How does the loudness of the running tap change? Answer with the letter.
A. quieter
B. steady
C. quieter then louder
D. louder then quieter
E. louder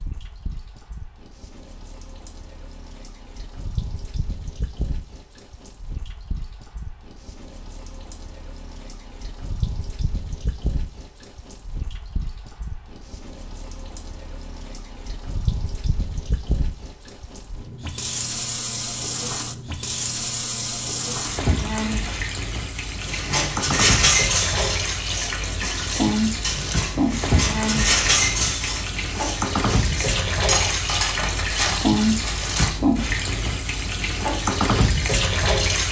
E.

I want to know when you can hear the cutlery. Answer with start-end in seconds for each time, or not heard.
23.1-32.7.